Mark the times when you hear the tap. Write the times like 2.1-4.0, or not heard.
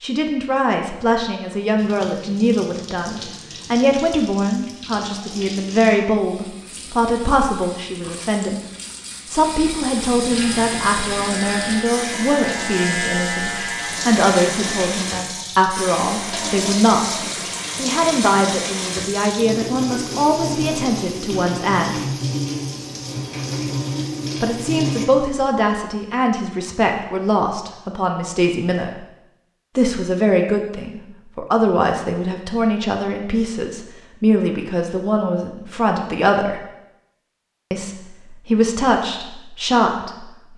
1.8-25.1.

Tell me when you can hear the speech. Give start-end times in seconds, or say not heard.
0.0-8.6, 9.3-22.1, 24.4-29.1, 29.8-36.6, 37.7-40.5.